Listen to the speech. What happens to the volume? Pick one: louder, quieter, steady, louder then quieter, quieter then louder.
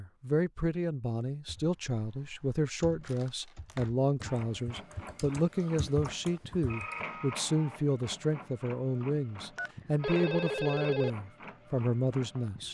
steady.